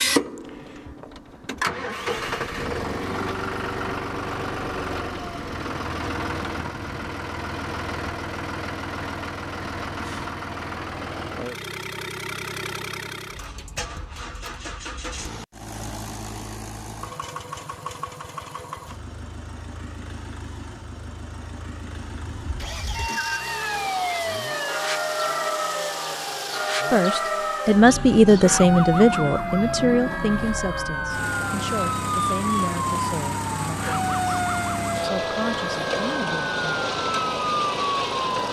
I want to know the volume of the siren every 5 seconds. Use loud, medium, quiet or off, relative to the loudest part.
off, off, off, off, loud, loud, loud, loud.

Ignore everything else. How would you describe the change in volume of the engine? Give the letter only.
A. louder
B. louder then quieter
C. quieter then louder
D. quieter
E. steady
C.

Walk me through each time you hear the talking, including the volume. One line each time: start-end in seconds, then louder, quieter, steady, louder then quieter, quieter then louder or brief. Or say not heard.
26.9-34.2 quieter
35.0-36.6 brief.